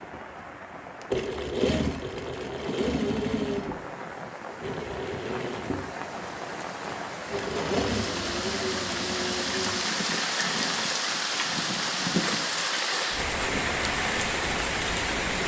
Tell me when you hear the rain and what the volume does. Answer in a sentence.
The rain can be heard from 0.0 to 15.4 s, getting louder.